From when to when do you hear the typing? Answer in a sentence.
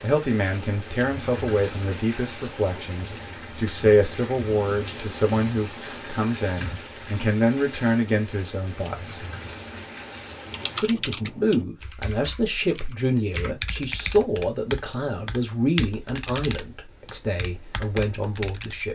You can hear the typing from 10.4 to 18.9 s.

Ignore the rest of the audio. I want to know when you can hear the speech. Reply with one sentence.
The speech can be heard from 0.0 to 9.2 s and from 10.8 to 18.9 s.